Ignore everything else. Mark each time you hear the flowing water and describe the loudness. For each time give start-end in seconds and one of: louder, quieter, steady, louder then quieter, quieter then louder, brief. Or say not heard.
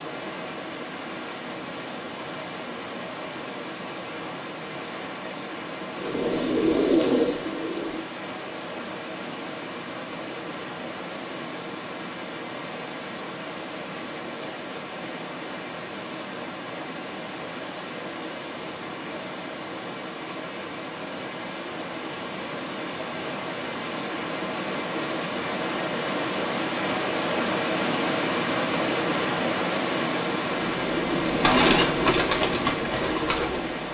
0.0-33.8 louder.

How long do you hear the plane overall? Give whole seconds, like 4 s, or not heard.
not heard.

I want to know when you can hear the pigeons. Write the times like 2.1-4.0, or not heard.
6.0-8.1, 30.6-33.8.